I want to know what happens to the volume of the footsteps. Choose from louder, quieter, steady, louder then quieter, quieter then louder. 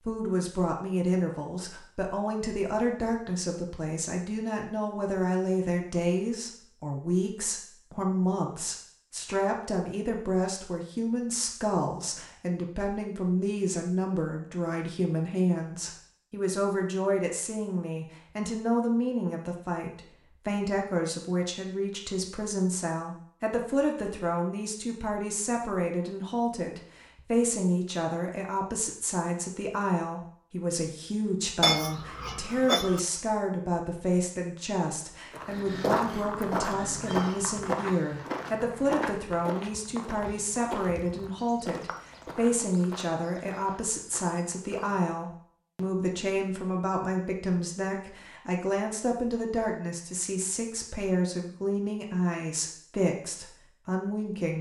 quieter.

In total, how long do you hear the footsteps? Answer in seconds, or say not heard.
10 s.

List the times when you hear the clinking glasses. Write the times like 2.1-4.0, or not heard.
31.6-33.0.